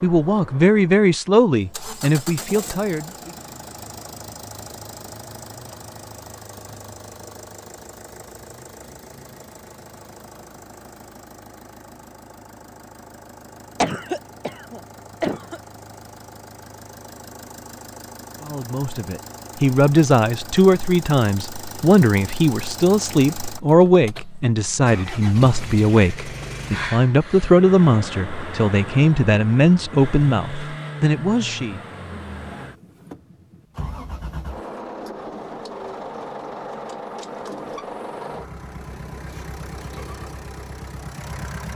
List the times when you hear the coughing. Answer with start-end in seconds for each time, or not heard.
13.8-15.6, 26.7-27.6.